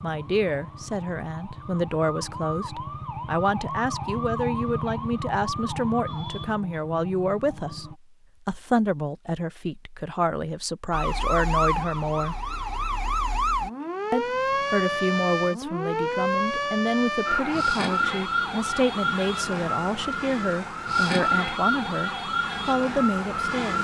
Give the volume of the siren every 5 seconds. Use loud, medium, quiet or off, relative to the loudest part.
medium, medium, loud, loud, loud.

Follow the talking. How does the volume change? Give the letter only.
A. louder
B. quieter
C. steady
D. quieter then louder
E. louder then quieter
C.